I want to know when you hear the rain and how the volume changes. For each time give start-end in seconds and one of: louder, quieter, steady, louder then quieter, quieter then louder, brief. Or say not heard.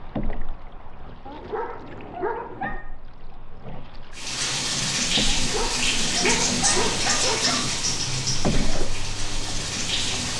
4.2-10.3 quieter.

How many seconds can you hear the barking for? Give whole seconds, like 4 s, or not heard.
4 s.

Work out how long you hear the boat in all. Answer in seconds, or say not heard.
10 s.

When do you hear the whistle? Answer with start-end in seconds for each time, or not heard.
not heard.